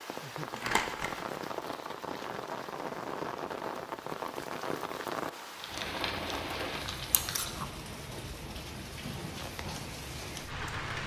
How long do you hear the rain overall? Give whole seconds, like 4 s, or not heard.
11 s.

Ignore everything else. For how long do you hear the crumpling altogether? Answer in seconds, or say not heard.
3 s.